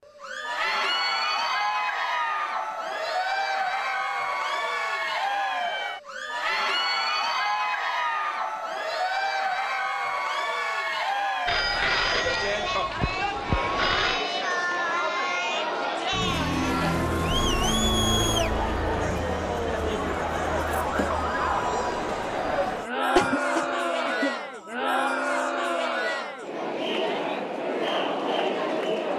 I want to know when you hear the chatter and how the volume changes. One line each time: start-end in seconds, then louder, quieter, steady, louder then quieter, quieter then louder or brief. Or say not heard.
0.1-29.1 steady.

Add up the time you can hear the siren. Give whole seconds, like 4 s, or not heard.
6 s.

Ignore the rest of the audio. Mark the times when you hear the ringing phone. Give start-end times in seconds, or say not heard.
11.4-14.2.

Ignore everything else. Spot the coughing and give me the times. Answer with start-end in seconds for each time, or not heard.
23.1-24.4.